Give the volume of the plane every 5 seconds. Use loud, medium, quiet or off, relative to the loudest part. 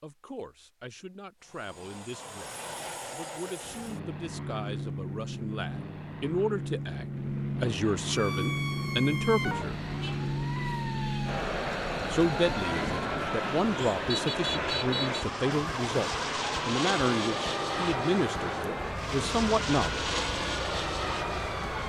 medium, loud, loud, loud, loud.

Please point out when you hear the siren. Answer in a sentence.
The siren can be heard from 8.1 to 21.8 s.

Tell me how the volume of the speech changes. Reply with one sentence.
The volume of the speech goes up.